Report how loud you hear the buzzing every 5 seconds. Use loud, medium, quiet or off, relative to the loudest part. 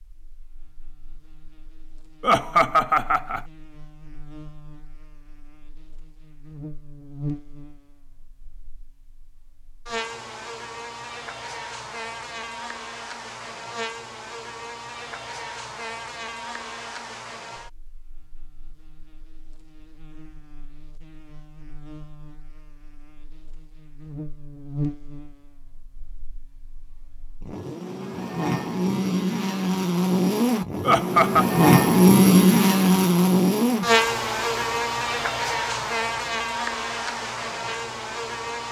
quiet, quiet, quiet, quiet, quiet, medium, loud, medium.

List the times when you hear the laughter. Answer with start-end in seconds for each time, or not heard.
2.2-3.4, 30.8-31.4.